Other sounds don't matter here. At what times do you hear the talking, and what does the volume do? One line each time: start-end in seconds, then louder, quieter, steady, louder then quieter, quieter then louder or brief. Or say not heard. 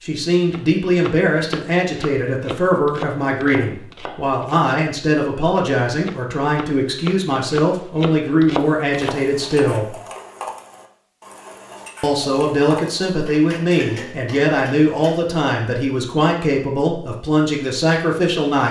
0.0-9.9 steady
12.0-18.6 steady.